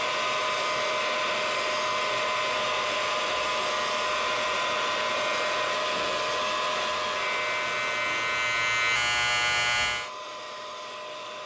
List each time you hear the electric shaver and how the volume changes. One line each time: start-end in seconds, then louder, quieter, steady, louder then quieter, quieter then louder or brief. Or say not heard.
0.0-10.1 louder.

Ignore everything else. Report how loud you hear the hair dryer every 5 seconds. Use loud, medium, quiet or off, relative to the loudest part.
loud, loud, medium.